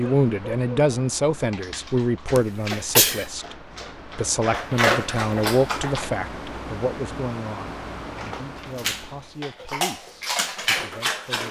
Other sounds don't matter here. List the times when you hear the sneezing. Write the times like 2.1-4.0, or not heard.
2.4-3.2.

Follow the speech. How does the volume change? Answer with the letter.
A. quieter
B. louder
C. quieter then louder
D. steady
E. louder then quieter
A.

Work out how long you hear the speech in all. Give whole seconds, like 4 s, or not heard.
11 s.